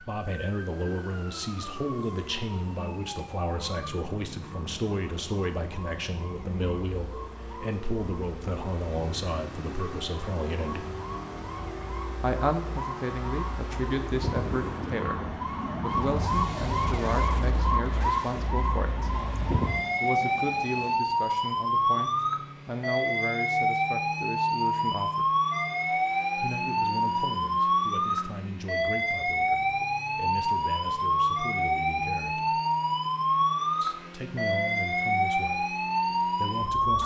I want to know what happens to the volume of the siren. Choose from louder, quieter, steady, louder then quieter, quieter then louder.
louder.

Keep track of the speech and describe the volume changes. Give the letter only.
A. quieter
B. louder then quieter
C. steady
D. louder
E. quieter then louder
A.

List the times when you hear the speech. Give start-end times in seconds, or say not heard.
0.0-10.8, 12.2-19.1, 20.0-25.3, 26.4-32.6, 33.8-37.0.